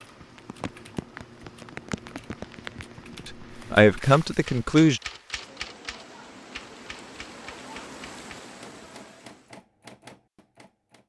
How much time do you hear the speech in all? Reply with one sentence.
You can hear the speech for 2 seconds altogether.